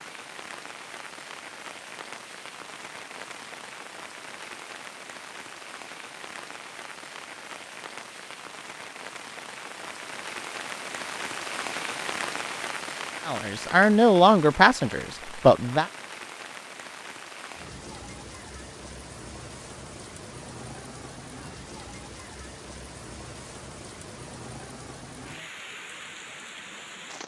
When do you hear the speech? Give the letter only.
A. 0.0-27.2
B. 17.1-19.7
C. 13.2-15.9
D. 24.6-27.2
C.